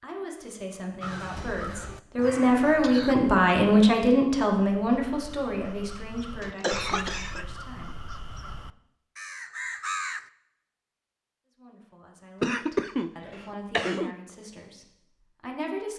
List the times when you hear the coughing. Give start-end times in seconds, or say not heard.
2.6-3.1, 6.4-7.5, 12.4-14.2.